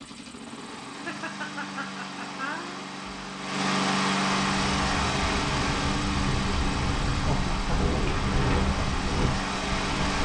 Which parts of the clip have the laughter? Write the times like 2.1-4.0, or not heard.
1.1-2.9, 7.2-8.0.